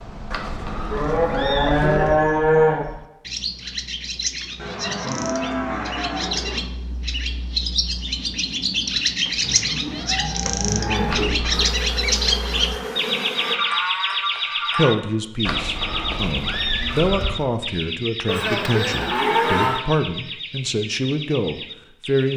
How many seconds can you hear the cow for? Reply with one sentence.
You can hear the cow for 9 seconds altogether.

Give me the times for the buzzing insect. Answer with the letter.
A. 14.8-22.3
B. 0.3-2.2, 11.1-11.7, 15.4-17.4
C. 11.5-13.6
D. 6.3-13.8
C.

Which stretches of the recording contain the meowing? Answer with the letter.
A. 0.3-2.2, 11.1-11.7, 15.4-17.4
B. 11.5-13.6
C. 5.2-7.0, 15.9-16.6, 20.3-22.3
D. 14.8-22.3
A.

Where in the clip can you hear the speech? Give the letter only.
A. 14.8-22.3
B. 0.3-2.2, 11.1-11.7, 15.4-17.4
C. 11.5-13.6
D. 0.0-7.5
A.